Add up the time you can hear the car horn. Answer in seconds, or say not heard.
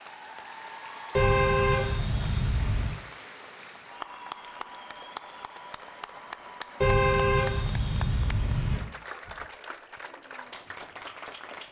4 s.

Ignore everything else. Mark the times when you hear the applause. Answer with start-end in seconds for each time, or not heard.
0.0-11.6.